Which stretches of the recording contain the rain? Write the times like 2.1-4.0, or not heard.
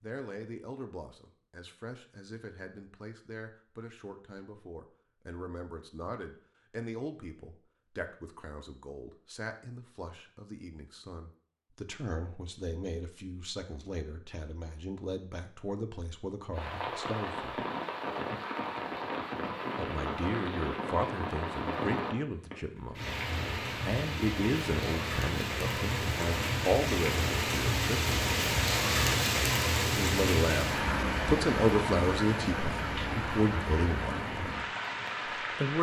16.5-35.7.